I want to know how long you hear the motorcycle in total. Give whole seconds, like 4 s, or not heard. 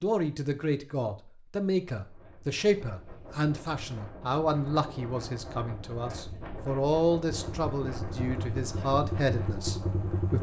3 s.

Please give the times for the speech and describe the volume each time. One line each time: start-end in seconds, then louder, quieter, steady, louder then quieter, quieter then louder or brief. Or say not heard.
0.0-10.3 steady.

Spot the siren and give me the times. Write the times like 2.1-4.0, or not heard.
not heard.